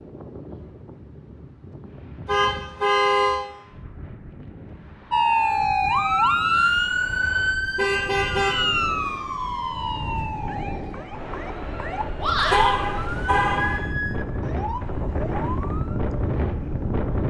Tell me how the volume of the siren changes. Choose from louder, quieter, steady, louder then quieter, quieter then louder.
quieter.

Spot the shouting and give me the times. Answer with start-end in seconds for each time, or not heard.
6.3-7.0, 12.2-12.8.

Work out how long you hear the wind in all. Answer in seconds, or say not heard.
17 s.